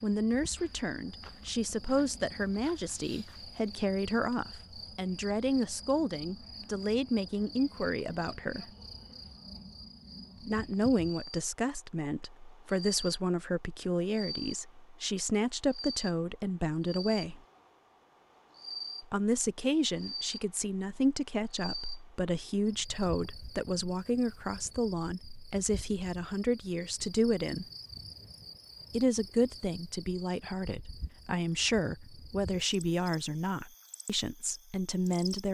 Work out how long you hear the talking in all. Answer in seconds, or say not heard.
31 s.